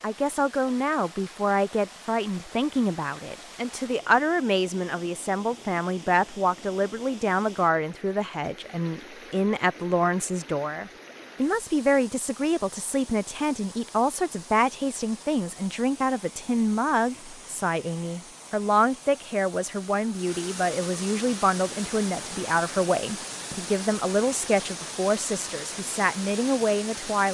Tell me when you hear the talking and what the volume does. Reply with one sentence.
You can hear the talking from 0.0 to 27.2 s, at a steady volume.